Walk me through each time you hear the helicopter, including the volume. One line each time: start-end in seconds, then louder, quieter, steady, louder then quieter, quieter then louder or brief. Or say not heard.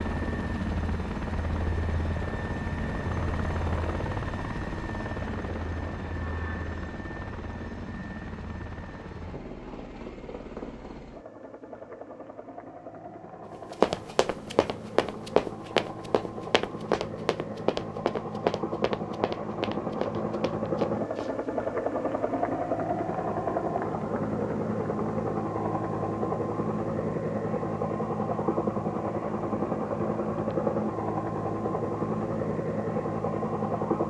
0.0-34.0 quieter then louder.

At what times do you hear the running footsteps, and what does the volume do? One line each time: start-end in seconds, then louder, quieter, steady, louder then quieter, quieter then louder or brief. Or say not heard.
13.8-21.4 quieter.